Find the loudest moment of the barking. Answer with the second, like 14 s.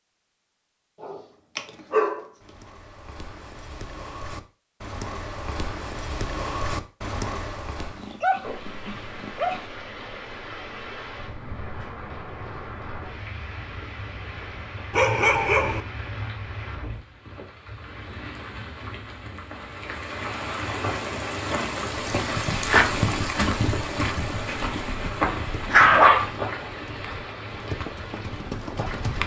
26 s.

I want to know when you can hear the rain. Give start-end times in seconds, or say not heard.
8.4-29.2.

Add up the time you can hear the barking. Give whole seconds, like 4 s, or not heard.
6 s.